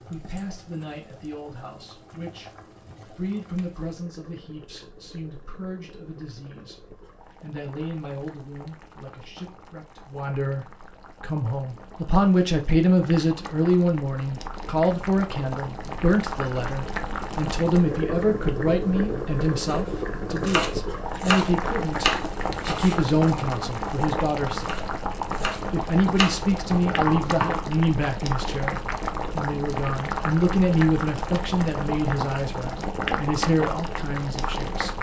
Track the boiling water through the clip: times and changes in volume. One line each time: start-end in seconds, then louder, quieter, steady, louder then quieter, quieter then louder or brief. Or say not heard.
0.0-34.9 louder.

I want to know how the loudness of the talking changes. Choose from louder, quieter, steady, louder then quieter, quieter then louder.
louder.